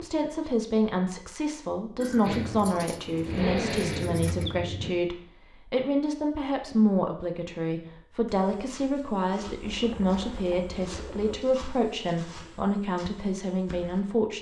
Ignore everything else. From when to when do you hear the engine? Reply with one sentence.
The engine can be heard from 2.2 to 4.9 s.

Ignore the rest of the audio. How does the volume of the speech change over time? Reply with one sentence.
The volume of the speech stays about the same.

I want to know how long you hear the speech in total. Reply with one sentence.
The speech can be heard for 14 seconds in total.